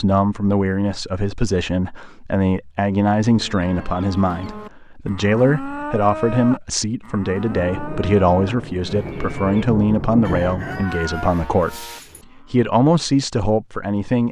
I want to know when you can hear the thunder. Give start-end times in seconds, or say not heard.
7.5-10.8.